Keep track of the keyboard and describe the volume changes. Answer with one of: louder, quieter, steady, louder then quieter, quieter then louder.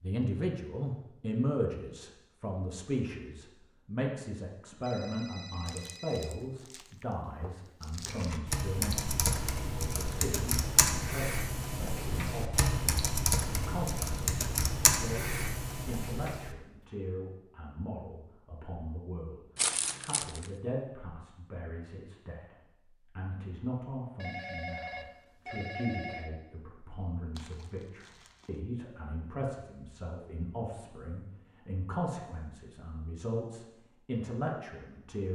steady.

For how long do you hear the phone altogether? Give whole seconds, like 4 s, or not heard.
4 s.